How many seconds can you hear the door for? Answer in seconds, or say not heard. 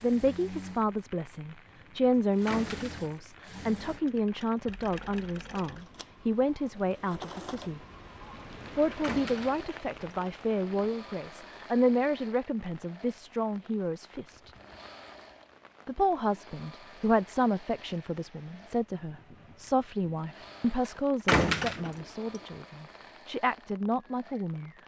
2 s.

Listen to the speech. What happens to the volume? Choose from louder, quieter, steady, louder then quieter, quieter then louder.
steady.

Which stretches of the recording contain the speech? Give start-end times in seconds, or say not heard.
0.0-7.8, 8.8-14.5, 15.8-24.7.